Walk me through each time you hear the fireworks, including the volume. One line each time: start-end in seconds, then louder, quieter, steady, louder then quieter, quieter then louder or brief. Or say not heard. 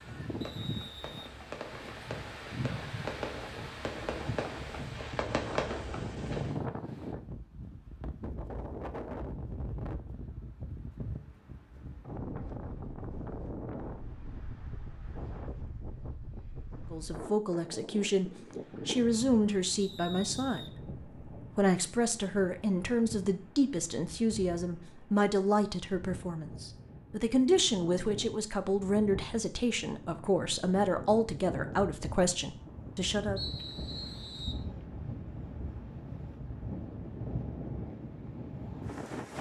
0.0-6.5 louder.